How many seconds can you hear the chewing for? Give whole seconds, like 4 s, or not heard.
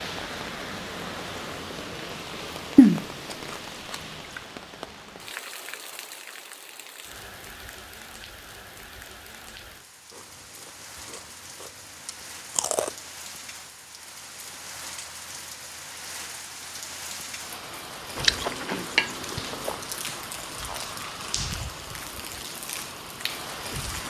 5 s.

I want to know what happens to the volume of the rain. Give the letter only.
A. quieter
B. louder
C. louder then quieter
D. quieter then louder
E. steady
D.